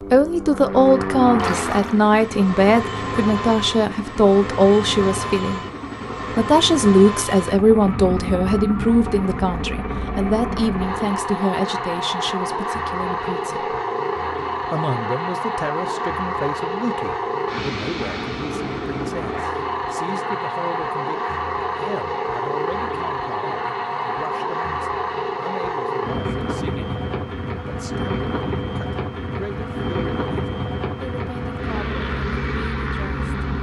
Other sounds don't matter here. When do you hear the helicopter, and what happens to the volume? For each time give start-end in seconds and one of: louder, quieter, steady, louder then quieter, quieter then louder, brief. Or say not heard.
0.0-33.5 steady.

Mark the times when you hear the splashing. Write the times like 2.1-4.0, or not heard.
1.4-2.0.